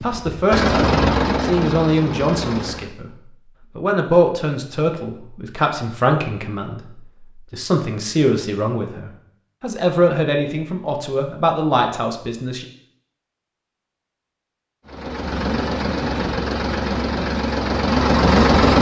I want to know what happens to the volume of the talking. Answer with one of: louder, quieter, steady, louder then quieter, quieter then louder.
steady.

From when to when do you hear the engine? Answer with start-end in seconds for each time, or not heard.
0.0-2.9, 14.8-18.7.